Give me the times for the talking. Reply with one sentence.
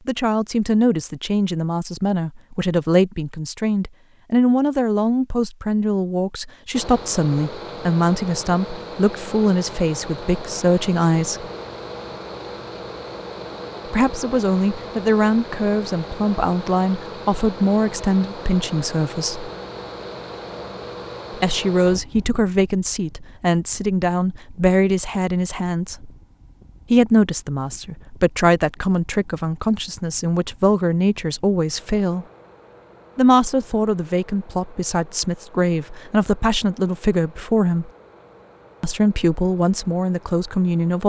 You can hear the talking from 0.1 to 11.4 s, from 13.8 to 19.5 s, from 21.3 to 26.1 s, from 26.9 to 32.2 s, from 33.1 to 37.9 s and from 38.8 to 41.0 s.